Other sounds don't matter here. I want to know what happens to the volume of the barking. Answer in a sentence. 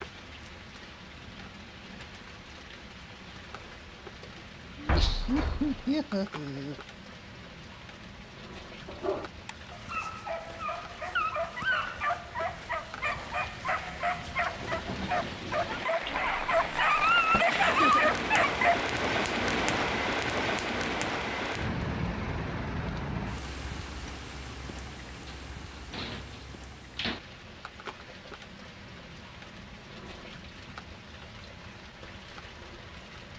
The loudness of the barking goes up.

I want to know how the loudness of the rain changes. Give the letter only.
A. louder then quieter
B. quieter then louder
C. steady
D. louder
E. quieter
A.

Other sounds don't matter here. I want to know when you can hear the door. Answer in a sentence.
The door can be heard from 4.8 to 5.9 s, from 16.0 to 17.4 s and from 25.2 to 27.2 s.